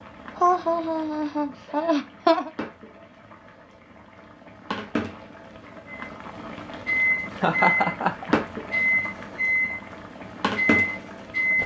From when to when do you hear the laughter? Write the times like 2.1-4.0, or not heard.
0.3-2.5, 7.3-8.8.